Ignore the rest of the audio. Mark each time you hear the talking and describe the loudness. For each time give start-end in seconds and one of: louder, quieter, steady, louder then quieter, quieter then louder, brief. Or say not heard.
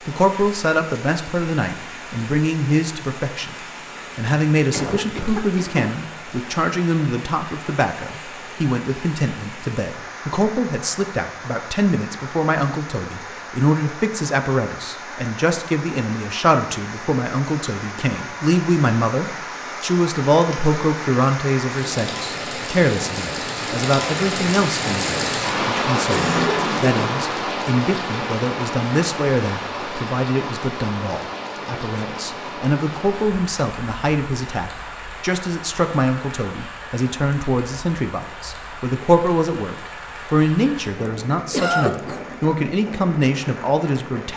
0.1-44.3 steady.